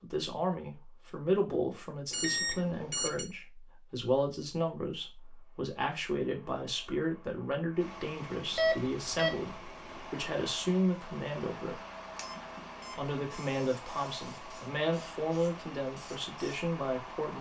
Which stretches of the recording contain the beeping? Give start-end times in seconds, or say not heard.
2.1-3.2, 8.6-9.6, 12.2-13.4.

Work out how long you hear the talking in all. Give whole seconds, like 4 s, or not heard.
16 s.